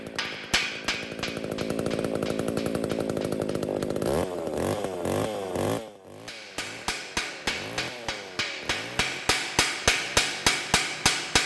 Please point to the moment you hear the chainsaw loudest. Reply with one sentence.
The volume of the chainsaw peaks at 4 seconds.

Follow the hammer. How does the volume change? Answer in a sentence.
The loudness of the hammer goes down, then up.